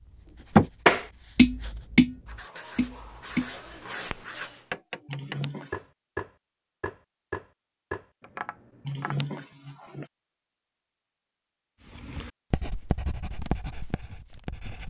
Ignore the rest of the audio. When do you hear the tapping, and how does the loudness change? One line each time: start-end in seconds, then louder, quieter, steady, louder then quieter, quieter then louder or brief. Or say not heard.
0.6-9.2 quieter.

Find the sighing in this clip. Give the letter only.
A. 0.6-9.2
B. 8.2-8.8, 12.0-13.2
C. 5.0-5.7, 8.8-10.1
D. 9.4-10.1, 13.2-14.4
C.